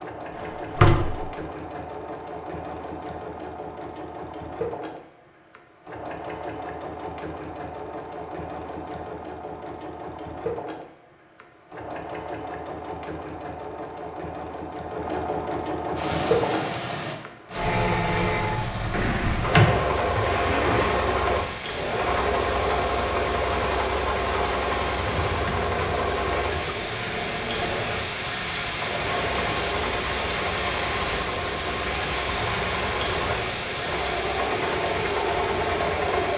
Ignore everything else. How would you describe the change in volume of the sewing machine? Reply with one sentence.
The volume of the sewing machine goes up.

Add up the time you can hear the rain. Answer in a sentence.
The rain can be heard for 20 seconds in total.